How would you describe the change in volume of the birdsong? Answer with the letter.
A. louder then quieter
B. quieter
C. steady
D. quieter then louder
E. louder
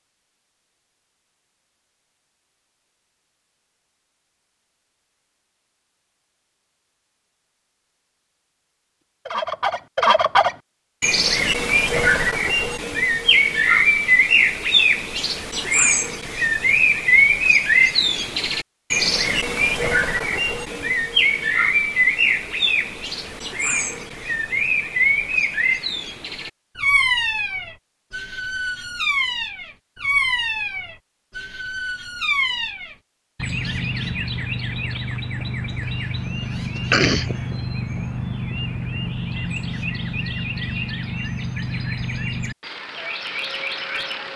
B.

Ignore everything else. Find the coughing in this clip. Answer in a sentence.
You can hear the coughing from 36.8 to 37.4 s.